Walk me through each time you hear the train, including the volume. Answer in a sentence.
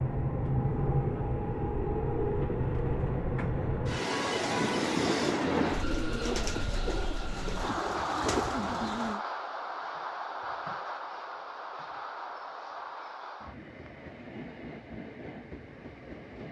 The train can be heard from 0.0 to 16.4 s, getting quieter.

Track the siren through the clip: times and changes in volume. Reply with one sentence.
The siren can't be heard in this clip.